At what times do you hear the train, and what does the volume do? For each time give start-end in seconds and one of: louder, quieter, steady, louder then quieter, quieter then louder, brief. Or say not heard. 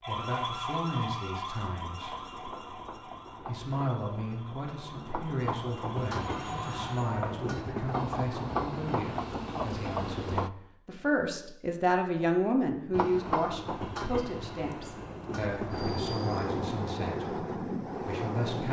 1.8-10.5 louder
12.9-18.6 quieter then louder.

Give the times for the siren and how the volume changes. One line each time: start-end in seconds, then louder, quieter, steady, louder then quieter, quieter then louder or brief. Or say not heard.
0.0-7.3 quieter then louder.